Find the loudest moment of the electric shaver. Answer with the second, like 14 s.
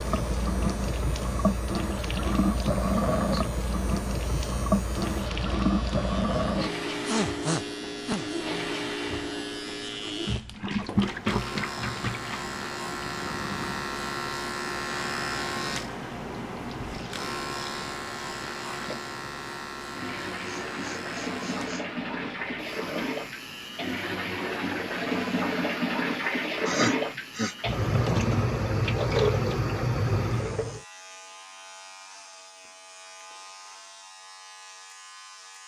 15 s.